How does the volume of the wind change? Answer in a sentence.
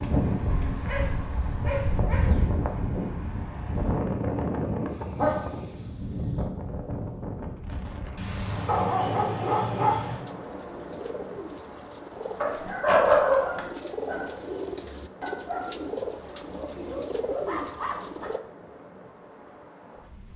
The loudness of the wind goes down.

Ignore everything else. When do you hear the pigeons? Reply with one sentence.
You can hear the pigeons from 10.2 to 18.4 s.